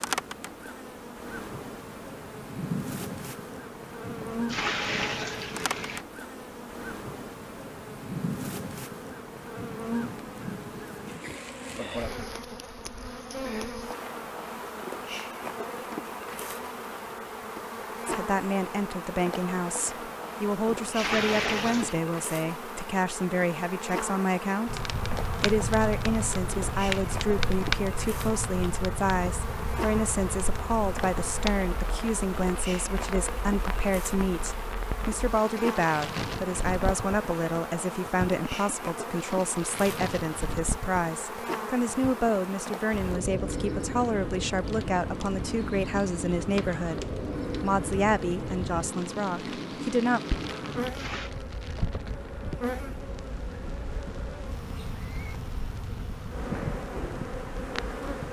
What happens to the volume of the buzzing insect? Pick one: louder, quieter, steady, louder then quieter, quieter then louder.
steady.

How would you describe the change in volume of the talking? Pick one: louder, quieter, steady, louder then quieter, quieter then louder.
steady.